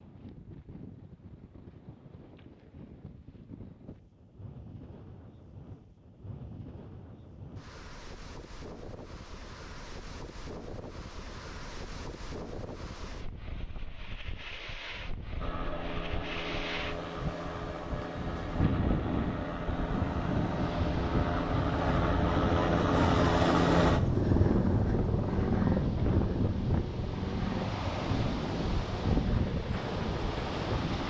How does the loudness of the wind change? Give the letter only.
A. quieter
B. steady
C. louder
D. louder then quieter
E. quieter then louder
C.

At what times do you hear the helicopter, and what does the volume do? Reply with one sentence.
The helicopter can be heard from 15.4 to 31.0 s, getting louder then quieter.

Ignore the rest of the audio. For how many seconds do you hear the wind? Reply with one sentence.
You can hear the wind for 31 seconds altogether.